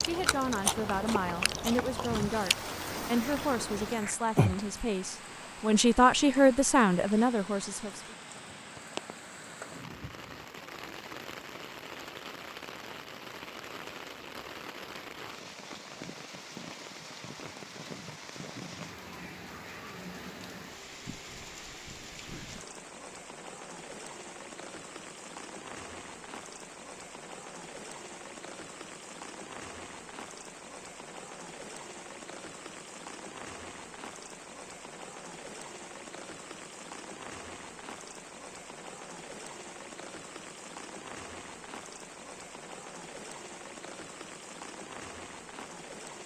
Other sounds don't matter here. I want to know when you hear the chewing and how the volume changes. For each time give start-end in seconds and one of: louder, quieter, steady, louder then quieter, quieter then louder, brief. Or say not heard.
0.0-4.8 quieter then louder.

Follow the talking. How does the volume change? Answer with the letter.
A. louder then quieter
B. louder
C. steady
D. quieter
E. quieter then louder
B.